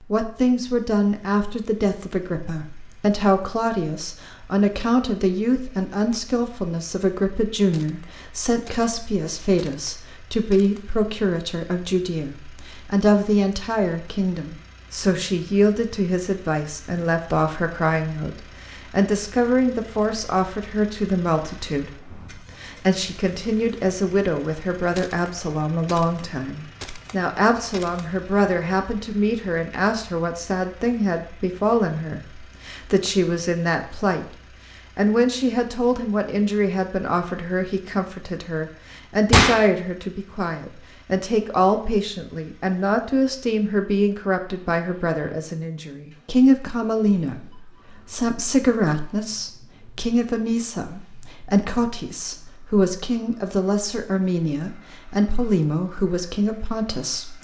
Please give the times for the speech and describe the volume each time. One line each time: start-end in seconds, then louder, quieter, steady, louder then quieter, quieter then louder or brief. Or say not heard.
0.0-34.4 steady
35.0-57.4 steady.